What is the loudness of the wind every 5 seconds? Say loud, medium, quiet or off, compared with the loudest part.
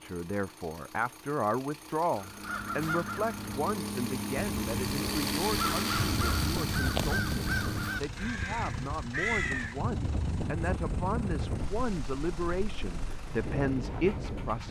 off, loud, loud.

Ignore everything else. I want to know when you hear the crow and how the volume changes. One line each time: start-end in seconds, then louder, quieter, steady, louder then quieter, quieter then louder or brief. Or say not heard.
2.1-9.8 steady.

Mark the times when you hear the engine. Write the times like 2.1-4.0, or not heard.
0.0-14.6.